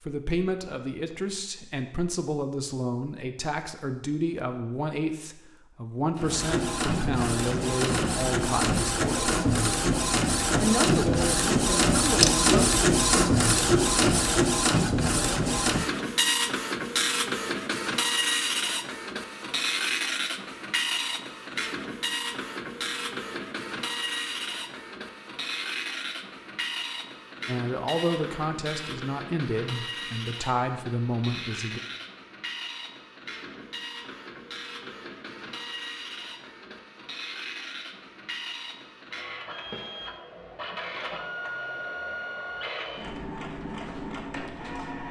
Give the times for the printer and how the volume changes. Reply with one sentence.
The printer can be heard from 6.2 to 45.0 s, getting quieter.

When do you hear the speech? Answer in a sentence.
You can hear the speech from 0.0 to 9.3 s, from 10.6 to 12.8 s and from 27.4 to 31.8 s.